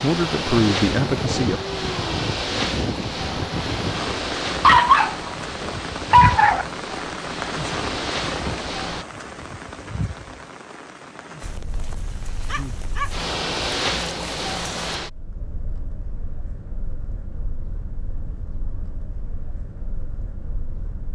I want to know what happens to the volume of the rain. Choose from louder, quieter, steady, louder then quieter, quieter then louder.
quieter.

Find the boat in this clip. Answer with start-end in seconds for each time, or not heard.
0.0-9.1, 11.4-21.1.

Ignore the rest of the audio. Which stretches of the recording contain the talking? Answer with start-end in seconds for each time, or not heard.
0.0-1.6.